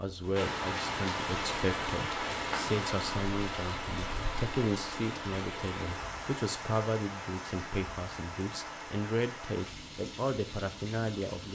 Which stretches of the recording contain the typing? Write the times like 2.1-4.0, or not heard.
not heard.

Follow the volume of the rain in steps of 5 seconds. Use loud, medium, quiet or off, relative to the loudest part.
loud, medium, medium.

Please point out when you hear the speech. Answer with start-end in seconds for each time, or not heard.
0.0-11.5.